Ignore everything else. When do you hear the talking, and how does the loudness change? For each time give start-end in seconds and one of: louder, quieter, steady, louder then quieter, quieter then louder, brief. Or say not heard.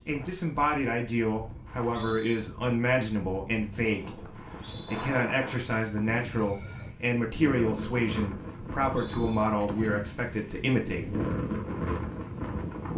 0.1-11.2 steady.